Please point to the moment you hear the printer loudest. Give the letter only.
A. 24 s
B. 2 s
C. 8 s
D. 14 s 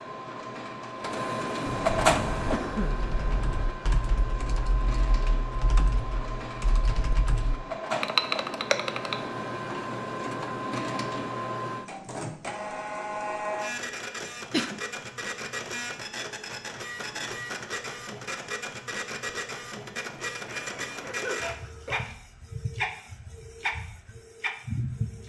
B.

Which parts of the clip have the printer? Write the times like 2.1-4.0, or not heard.
0.0-25.2.